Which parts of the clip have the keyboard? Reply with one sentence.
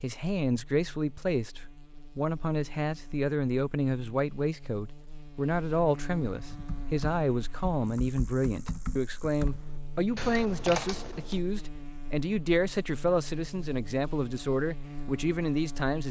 The keyboard can be heard from 6.3 to 11.4 s.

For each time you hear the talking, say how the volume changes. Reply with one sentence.
The talking can be heard from 0.0 to 16.0 s, at a steady volume.